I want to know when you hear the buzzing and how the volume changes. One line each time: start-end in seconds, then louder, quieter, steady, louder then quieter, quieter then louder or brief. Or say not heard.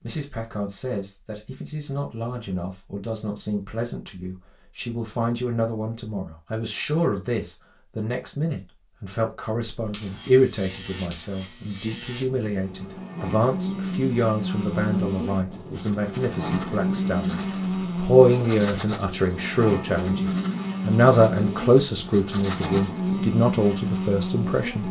9.7-24.8 louder.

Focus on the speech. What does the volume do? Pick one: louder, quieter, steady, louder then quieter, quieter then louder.
louder.